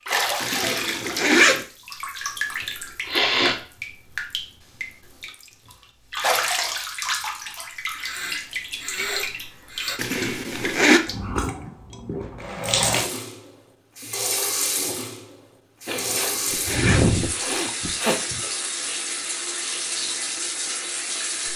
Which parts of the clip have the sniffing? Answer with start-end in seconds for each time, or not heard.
3.0-3.6, 8.0-10.0, 15.8-18.4.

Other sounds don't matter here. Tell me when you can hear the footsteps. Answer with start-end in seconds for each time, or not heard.
not heard.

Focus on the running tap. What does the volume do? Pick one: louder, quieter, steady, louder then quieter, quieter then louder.
steady.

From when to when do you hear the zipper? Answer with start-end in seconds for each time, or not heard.
0.4-1.6, 9.9-11.0, 15.8-17.1.